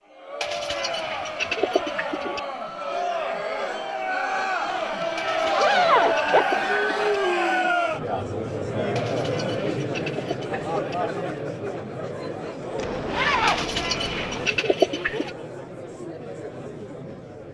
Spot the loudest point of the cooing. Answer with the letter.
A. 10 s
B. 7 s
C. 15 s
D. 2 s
C.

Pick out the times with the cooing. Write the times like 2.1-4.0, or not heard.
0.4-2.4, 5.2-7.2, 8.9-10.9, 13.4-15.3.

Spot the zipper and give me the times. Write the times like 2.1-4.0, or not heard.
4.7-6.4, 12.8-14.5.